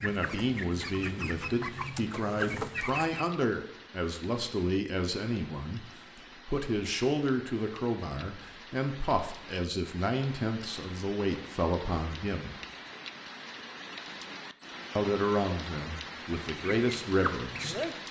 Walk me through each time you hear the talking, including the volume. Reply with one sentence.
You can hear the talking from 0.0 to 12.6 s, at a steady volume; and briefly from 14.9 to 17.8 s.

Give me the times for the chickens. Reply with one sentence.
You can hear the chickens from 0.0 to 3.4 s and from 16.4 to 17.9 s.